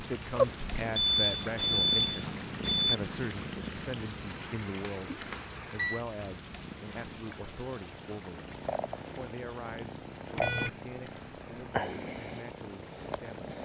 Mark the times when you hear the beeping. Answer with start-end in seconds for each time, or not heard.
0.9-3.0, 4.8-6.0, 10.3-11.2.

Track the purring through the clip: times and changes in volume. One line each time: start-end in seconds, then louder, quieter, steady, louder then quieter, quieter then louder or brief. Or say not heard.
0.0-13.6 quieter then louder.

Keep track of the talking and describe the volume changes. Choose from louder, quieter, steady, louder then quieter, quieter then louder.
quieter.